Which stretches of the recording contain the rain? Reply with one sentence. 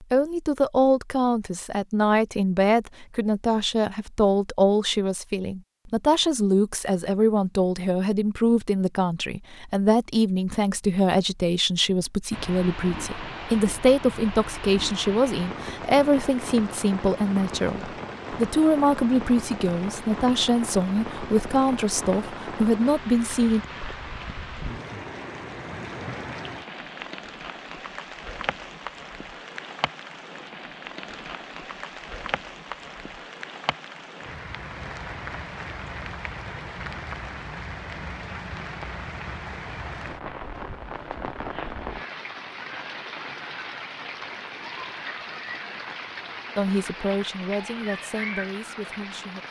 The rain can be heard from 12.3 to 49.4 s.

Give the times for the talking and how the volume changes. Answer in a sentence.
The talking can be heard from 0.0 to 23.6 s, at a steady volume; and briefly from 46.5 to 49.4 s.